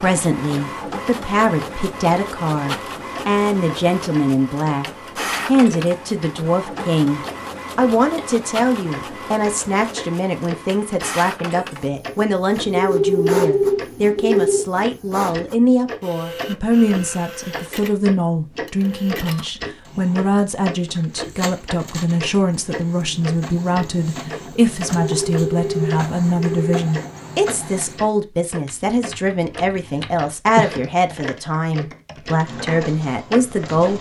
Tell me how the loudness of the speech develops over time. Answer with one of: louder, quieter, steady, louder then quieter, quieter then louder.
steady.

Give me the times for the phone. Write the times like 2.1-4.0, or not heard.
12.7-14.6, 24.9-26.9.